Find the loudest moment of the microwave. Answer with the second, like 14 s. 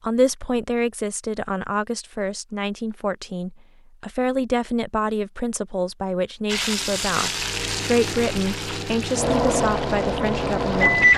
11 s.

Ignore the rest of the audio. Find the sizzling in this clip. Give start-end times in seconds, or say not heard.
6.5-11.1.